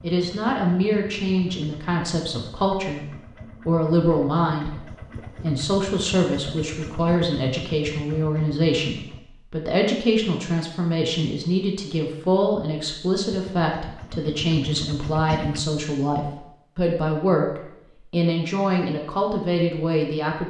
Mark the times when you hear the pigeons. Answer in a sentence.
The pigeons can't be heard in this clip.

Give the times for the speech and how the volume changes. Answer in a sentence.
You can hear the speech from 0.0 to 20.4 s, at a steady volume.